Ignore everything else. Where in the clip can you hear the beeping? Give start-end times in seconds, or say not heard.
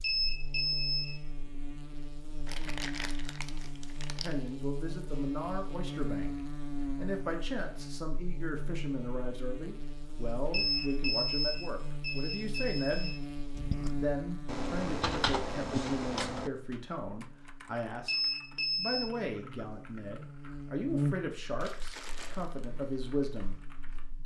0.0-1.1, 10.5-13.2, 18.1-19.1.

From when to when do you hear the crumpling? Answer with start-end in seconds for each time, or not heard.
2.5-4.4, 21.6-22.6.